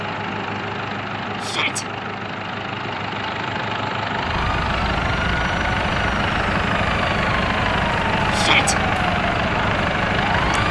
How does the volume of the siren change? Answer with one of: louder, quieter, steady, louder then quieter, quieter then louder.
steady.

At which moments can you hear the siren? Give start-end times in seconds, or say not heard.
4.2-10.6.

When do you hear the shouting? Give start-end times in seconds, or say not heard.
1.4-1.9, 8.3-8.8.